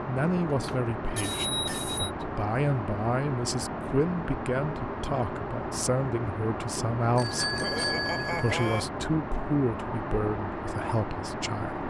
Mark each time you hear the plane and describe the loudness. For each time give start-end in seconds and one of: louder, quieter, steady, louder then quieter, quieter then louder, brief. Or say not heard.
0.0-11.8 steady.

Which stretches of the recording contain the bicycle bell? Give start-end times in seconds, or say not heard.
0.5-2.1, 7.2-8.8.